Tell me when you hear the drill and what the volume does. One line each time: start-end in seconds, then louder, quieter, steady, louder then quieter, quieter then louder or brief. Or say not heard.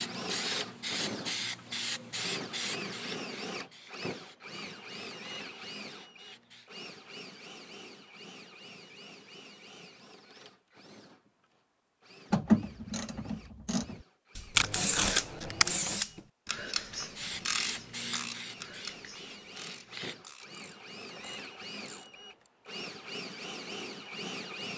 0.0-24.7 quieter then louder.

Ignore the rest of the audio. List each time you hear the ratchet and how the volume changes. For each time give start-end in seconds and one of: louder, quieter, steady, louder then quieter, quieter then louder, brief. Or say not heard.
12.3-22.5 louder then quieter.